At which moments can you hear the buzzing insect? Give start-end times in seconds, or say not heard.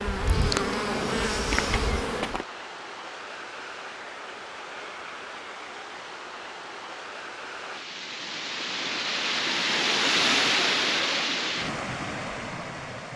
0.0-2.5.